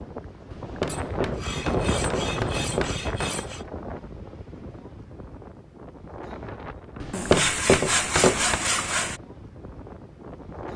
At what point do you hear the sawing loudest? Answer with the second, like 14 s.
8 s.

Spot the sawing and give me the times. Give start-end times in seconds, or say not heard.
0.8-3.6, 7.1-9.2.